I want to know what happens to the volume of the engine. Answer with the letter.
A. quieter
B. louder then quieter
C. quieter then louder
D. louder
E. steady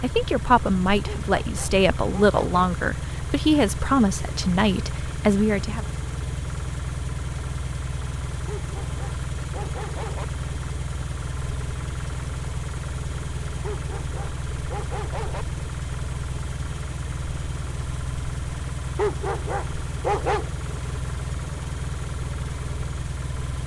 E.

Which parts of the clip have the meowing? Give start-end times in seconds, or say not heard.
not heard.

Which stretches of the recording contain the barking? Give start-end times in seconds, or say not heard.
1.1-2.5, 8.4-10.2, 13.6-15.4, 18.9-20.5.